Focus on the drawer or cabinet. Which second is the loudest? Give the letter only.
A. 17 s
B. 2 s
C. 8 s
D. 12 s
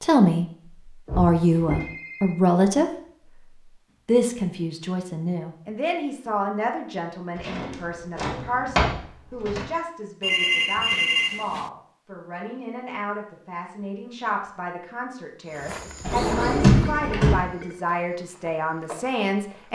A.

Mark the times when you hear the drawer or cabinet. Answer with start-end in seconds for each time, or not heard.
1.1-1.9, 7.3-9.7, 16.0-17.4.